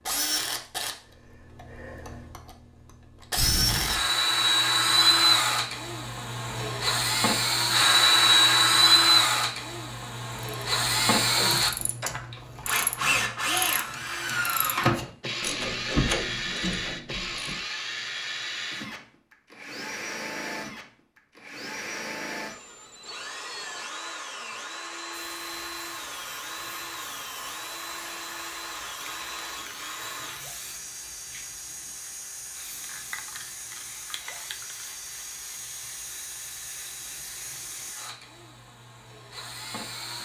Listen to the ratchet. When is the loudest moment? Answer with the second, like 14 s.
16 s.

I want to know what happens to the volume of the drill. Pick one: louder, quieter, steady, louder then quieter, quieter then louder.
quieter.